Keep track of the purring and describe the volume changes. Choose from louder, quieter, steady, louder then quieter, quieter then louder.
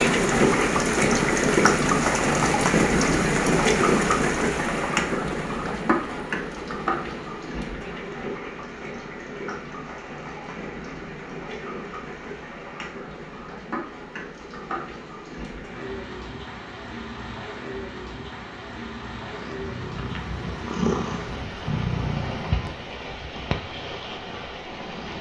louder then quieter.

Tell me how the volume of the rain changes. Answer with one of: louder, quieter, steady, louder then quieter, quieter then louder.
quieter.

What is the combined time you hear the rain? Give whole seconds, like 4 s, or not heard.
25 s.